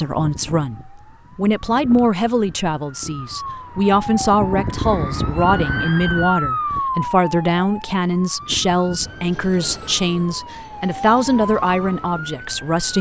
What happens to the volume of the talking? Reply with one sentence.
The loudness of the talking stays about the same.